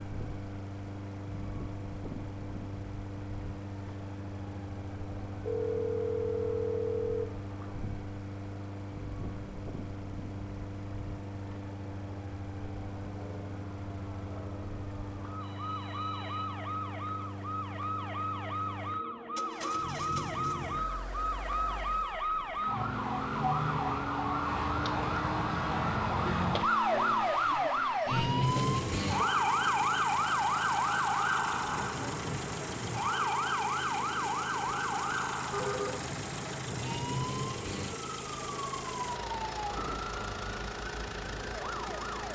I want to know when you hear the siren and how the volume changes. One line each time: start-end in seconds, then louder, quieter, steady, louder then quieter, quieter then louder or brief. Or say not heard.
0.0-42.2 louder then quieter.